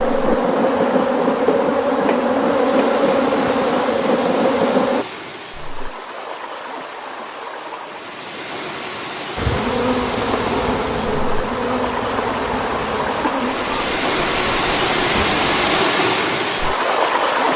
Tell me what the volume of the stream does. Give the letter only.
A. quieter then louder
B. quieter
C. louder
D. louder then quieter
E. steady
C.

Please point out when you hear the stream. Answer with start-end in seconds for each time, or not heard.
0.0-17.5.